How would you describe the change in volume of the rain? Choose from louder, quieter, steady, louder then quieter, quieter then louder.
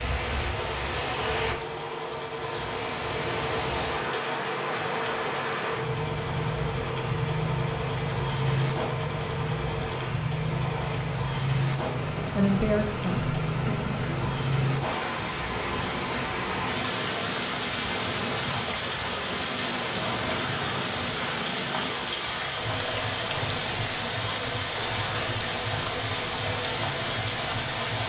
steady.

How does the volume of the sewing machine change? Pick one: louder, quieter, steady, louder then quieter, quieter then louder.
steady.